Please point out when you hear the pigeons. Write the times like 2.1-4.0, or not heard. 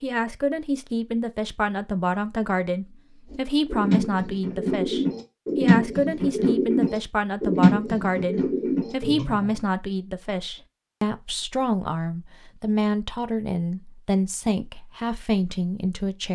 3.3-9.6.